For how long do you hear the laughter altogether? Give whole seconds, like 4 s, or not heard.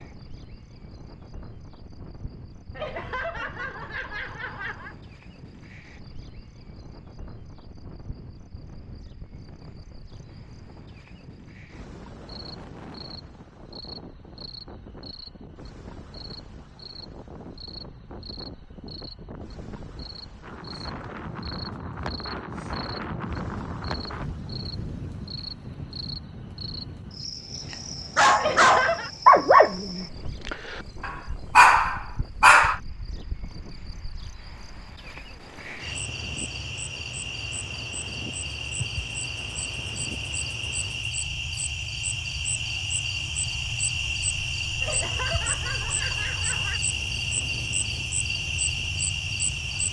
5 s.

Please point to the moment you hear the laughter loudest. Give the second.
29 s.